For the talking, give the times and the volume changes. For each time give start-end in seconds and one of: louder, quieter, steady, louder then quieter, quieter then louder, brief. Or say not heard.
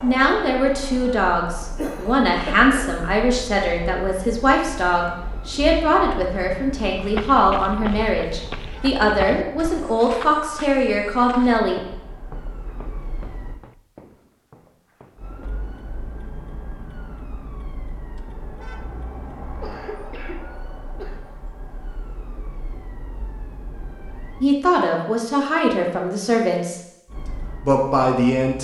0.0-11.8 steady
24.4-26.8 brief
27.6-28.5 brief.